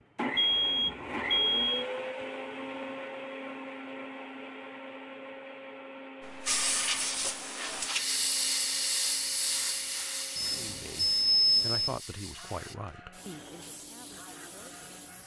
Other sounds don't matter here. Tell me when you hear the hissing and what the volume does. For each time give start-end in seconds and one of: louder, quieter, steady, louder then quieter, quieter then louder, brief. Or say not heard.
6.2-15.2 quieter.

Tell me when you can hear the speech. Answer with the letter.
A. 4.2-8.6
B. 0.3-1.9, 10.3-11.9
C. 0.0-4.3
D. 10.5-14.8
D.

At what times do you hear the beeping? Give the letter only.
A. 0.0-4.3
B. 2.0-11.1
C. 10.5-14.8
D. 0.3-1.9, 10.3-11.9
D.